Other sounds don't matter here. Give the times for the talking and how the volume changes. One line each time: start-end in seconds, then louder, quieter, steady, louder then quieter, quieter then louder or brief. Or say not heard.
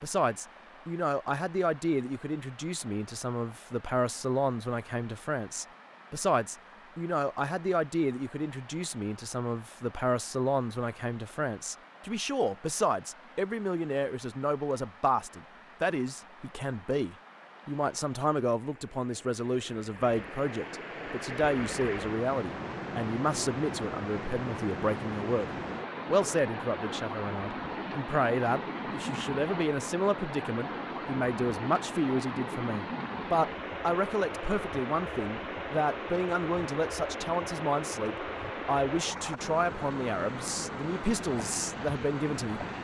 0.0-42.6 steady.